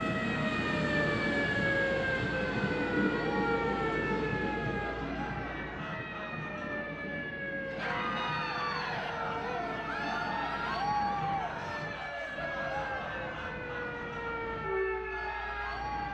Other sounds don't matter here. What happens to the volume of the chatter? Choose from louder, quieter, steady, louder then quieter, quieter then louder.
louder then quieter.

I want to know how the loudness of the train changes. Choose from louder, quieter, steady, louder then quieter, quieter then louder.
quieter.